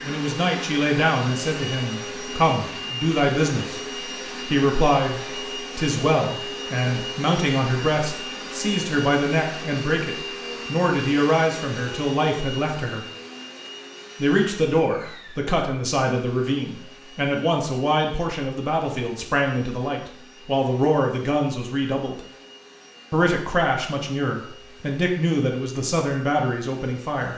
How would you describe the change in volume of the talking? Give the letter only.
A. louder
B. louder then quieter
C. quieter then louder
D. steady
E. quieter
D.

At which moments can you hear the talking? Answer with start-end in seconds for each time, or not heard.
0.0-3.8, 4.5-13.1, 14.2-22.2, 23.1-27.3.